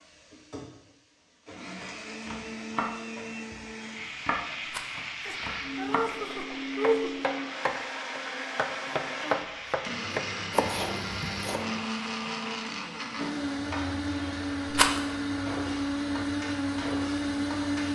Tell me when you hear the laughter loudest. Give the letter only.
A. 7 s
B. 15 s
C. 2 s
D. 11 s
A.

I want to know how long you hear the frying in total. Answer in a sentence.
You can hear the frying for 14 seconds altogether.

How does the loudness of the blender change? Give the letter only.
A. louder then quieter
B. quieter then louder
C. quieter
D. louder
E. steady
D.